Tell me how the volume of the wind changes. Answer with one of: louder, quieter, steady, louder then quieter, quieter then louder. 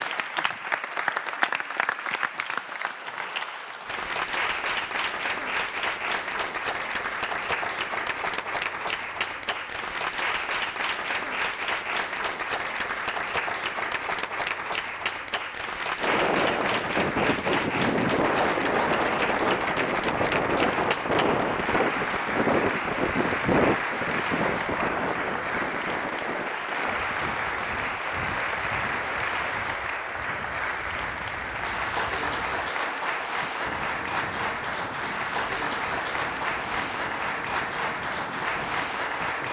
quieter.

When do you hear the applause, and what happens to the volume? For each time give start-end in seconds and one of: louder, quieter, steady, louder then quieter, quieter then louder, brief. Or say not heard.
0.0-39.4 steady.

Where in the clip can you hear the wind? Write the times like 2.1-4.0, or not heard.
16.0-39.4.